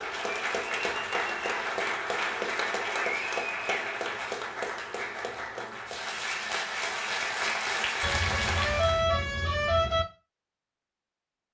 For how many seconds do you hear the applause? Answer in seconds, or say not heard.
9 s.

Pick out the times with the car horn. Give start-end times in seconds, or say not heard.
8.0-10.1.